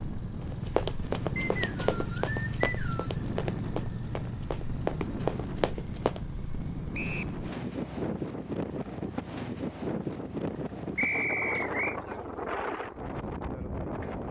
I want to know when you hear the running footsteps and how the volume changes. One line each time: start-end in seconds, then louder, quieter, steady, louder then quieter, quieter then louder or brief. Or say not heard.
0.4-6.2 quieter then louder.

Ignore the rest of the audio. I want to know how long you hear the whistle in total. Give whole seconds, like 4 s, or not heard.
3 s.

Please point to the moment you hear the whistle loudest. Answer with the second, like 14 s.
11 s.